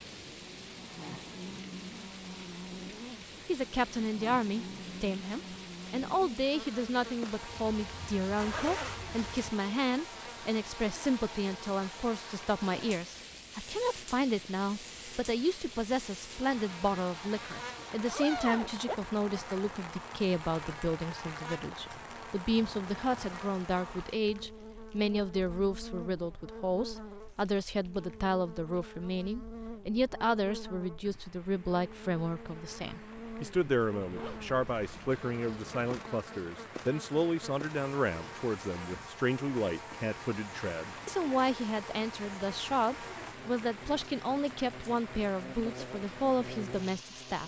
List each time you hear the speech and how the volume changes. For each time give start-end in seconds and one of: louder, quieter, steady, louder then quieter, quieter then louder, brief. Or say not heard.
3.5-47.4 steady.